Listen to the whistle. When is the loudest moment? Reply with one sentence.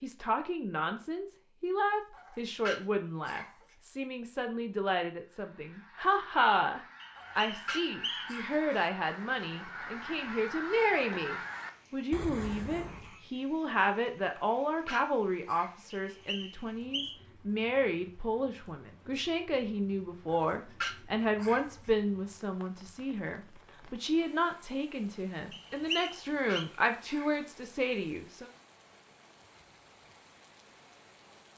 The loudest moment of the whistle is at 26 seconds.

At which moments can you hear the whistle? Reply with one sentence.
The whistle can be heard from 7.0 to 8.4 s, from 16.1 to 17.1 s and from 25.5 to 26.6 s.